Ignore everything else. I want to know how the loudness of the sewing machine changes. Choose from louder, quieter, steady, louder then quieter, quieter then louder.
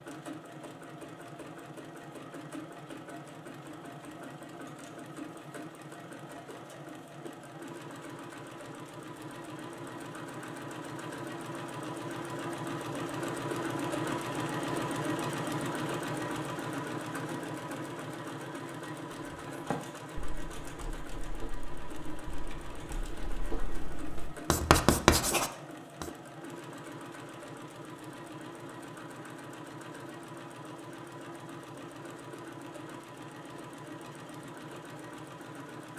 louder then quieter.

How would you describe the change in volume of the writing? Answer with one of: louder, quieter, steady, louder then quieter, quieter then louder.
louder.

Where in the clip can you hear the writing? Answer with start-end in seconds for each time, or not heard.
19.4-26.1.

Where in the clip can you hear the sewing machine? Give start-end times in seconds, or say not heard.
0.0-35.9.